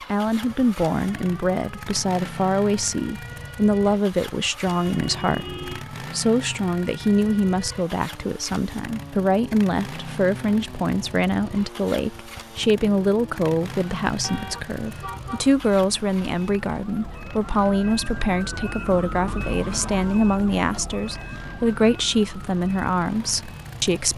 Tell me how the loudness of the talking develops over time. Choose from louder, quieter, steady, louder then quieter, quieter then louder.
steady.